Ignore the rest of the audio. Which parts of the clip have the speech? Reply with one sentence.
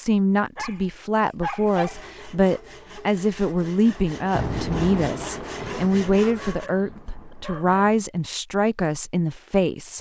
You can hear the speech from 0.0 to 9.9 s.